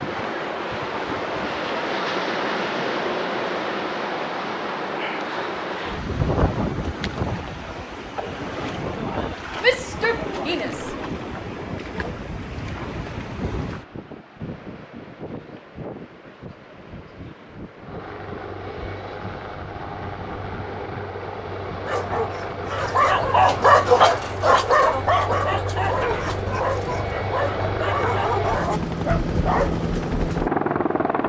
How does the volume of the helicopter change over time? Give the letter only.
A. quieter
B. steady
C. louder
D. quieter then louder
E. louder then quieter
C.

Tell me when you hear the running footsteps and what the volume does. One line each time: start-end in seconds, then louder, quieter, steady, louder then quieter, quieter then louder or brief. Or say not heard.
not heard.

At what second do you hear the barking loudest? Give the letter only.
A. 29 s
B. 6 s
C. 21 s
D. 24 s
D.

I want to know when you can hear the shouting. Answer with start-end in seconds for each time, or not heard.
9.6-10.9.